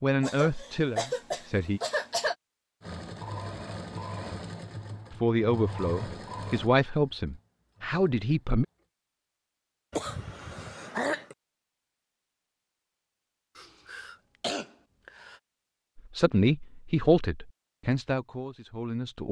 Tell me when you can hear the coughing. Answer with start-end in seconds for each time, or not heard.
0.2-2.4, 9.9-11.3, 13.6-15.3.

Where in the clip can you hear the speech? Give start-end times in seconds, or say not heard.
0.0-1.8, 5.1-8.7, 15.9-19.2.